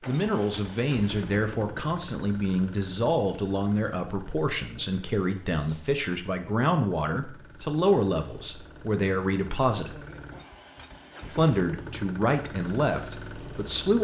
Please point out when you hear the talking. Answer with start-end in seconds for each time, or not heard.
0.1-10.0, 11.3-13.9.